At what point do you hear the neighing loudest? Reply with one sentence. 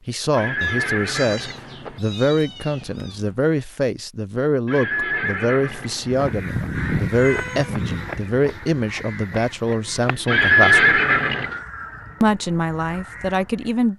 The loudest moment of the neighing is at 11 seconds.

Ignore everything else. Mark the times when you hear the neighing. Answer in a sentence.
You can hear the neighing from 0.3 to 2.0 s, from 4.7 to 6.2 s and from 10.2 to 11.6 s.